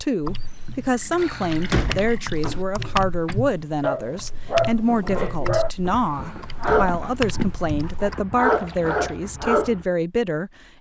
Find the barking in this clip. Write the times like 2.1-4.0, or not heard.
2.8-9.8.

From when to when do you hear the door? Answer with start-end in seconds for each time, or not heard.
1.1-2.6, 6.1-6.9.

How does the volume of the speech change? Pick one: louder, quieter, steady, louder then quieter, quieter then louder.
steady.